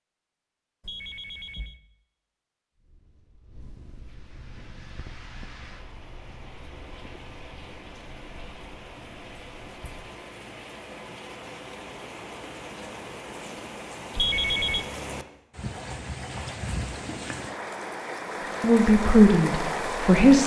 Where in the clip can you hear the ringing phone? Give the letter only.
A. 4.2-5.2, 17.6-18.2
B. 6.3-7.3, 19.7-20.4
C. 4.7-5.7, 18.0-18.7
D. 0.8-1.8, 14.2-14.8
D.